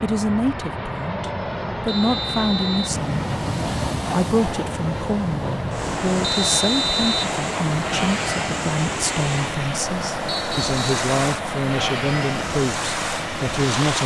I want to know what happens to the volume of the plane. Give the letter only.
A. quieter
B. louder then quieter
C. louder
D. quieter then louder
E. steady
E.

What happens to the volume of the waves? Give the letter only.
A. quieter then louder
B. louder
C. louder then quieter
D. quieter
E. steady
E.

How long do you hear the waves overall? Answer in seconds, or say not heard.
11 s.